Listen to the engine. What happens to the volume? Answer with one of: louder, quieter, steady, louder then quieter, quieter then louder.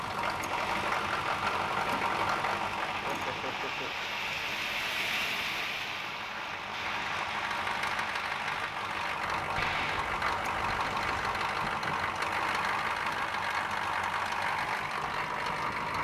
quieter then louder.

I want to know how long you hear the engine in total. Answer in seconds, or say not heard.
16 s.